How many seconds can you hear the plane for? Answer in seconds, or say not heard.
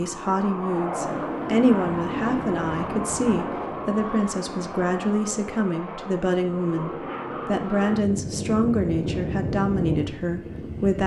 11 s.